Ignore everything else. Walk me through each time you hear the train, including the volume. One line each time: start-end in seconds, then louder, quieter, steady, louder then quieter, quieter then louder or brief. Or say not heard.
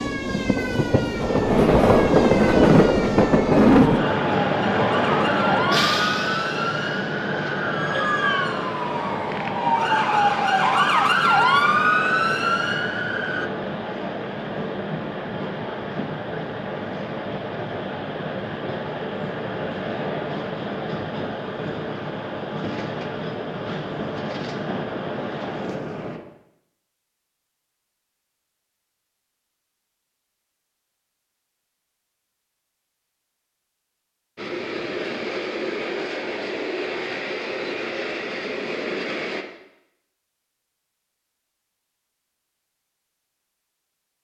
0.0-26.2 quieter
34.4-39.5 steady.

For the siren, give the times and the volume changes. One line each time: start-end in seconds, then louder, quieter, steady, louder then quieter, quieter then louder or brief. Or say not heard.
0.0-13.5 louder.